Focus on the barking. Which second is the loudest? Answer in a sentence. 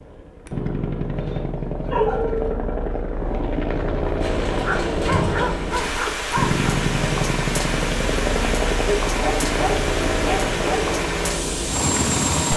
The loudest moment of the barking is at 2 seconds.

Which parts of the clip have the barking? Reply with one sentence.
You can hear the barking from 1.1 to 2.5 s, from 4.6 to 6.6 s and from 8.8 to 10.8 s.